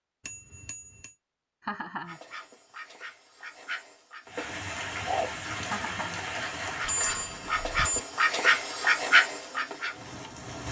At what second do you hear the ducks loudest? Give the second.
9 s.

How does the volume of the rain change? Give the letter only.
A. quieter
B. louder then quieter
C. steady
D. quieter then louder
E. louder
A.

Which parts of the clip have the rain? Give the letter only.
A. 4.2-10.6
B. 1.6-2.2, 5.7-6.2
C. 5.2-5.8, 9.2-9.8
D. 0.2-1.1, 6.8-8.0
A.